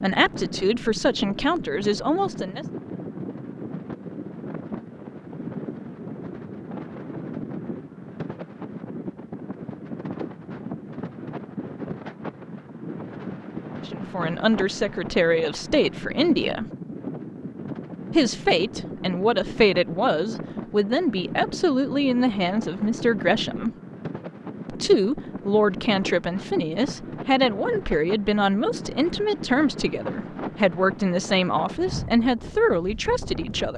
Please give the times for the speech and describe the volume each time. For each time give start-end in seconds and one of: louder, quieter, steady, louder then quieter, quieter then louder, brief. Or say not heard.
0.0-2.6 brief
13.8-16.6 brief
18.1-23.7 steady
24.6-33.7 steady.